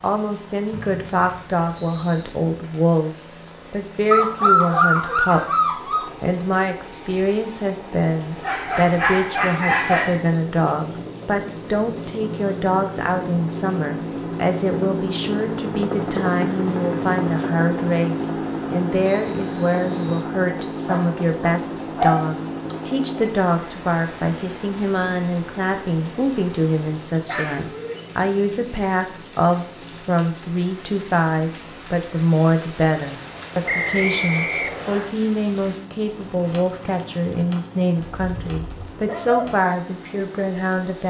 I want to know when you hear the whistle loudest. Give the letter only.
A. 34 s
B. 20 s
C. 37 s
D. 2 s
A.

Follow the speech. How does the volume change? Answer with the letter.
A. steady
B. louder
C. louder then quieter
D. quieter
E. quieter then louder
A.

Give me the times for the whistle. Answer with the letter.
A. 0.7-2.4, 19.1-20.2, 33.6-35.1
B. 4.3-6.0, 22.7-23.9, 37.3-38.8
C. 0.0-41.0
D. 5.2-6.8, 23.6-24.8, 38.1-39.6
A.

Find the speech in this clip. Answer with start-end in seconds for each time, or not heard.
0.0-41.0.